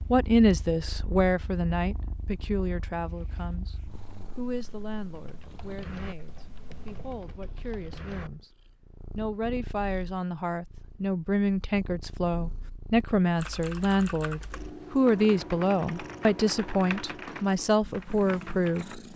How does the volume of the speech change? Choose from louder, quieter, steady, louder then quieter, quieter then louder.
quieter then louder.